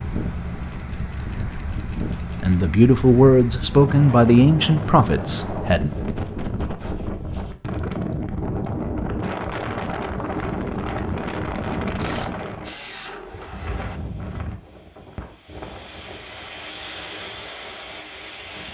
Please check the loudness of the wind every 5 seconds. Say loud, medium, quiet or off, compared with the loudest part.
loud, loud, loud, medium.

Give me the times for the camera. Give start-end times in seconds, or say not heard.
0.7-2.6, 11.9-14.0.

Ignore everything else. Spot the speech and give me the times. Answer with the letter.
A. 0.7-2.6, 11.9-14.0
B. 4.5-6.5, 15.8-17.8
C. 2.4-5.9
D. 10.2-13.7
C.